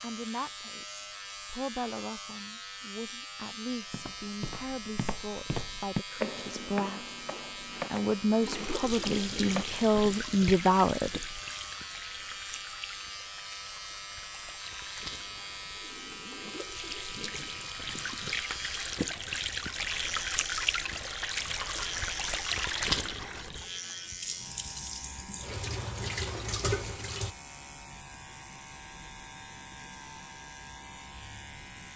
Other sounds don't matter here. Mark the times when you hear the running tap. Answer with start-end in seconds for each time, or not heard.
8.4-27.4.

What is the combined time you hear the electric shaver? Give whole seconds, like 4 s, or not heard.
32 s.